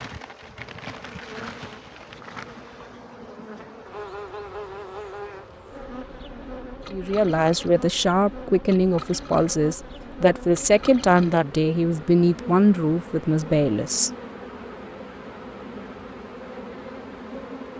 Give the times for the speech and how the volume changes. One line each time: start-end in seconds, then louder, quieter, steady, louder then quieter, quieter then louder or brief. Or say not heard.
6.9-14.1 steady.